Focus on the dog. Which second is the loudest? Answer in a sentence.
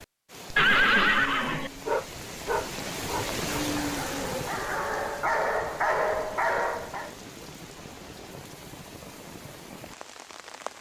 The volume of the dog peaks at 6 seconds.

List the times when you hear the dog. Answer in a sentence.
You can hear the dog from 1.9 to 7.1 s.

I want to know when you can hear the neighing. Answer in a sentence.
You can hear the neighing from 0.6 to 1.7 s.